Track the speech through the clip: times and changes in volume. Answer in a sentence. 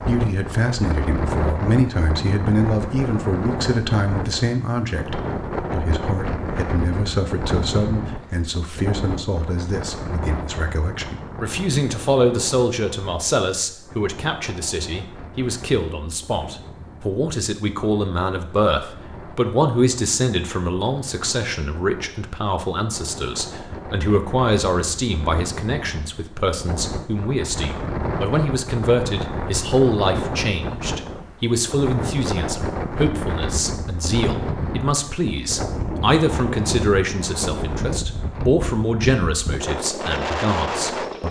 The speech can be heard from 0.1 to 41.2 s, at a steady volume.